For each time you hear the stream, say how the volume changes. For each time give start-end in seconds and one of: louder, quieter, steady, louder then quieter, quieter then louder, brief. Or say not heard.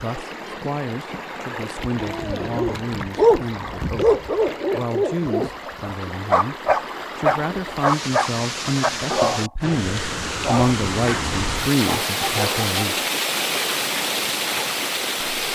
0.0-15.5 louder.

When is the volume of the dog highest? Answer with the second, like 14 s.
3 s.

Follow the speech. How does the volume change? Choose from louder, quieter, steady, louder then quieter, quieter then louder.
louder.